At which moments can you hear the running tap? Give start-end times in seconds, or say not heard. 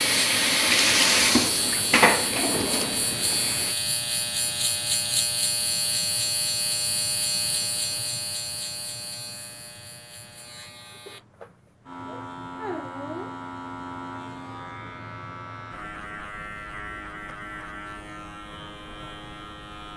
0.0-3.8.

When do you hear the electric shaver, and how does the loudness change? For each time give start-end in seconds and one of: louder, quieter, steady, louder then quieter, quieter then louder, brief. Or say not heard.
0.0-19.9 quieter.